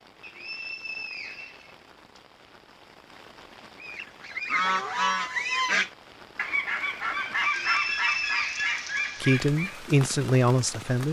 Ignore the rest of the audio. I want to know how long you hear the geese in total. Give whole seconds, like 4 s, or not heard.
6 s.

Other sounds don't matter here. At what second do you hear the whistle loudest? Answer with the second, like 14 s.
8 s.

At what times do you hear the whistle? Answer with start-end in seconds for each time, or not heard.
0.2-2.2, 7.5-8.7.